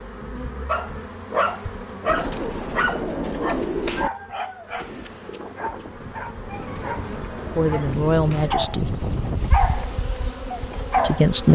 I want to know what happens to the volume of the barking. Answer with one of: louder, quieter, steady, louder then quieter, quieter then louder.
quieter then louder.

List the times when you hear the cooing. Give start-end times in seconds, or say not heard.
2.0-4.1, 6.5-8.6.